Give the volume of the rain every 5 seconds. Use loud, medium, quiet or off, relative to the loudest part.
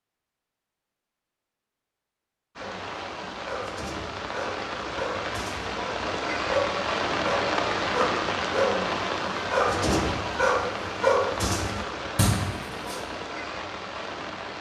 medium, loud, medium.